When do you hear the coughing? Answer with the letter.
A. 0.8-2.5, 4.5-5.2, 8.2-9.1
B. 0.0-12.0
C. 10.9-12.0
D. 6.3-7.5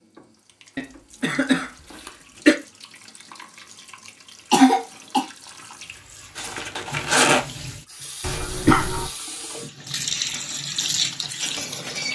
A.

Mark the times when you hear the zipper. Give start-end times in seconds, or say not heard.
6.3-7.5.